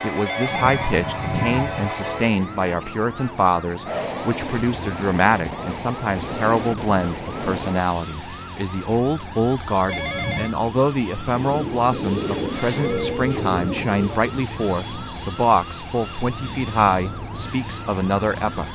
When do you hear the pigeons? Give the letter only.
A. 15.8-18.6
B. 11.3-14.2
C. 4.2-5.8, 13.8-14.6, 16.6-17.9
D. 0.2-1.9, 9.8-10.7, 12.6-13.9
B.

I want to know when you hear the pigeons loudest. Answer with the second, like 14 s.
13 s.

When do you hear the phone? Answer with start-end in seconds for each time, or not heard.
0.2-1.9, 9.8-10.7, 12.6-13.9.